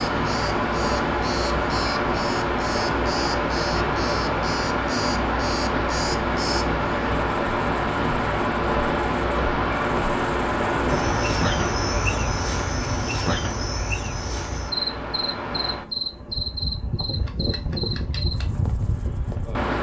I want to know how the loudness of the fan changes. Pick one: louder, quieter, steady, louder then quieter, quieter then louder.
quieter.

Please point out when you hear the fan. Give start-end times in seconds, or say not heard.
0.0-19.7.